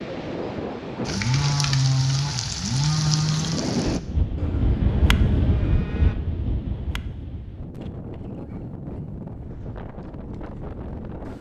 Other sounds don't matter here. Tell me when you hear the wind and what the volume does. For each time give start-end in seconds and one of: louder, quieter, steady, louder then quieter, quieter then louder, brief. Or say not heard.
0.0-11.3 louder then quieter.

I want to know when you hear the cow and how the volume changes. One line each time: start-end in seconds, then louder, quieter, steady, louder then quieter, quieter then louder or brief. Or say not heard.
1.1-6.2 quieter.